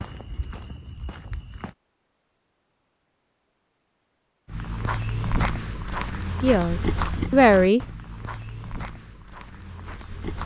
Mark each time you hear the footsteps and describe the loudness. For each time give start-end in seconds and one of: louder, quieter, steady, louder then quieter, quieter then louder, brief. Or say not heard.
0.0-1.8 brief
4.5-10.4 quieter.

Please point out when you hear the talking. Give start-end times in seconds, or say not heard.
6.4-7.8.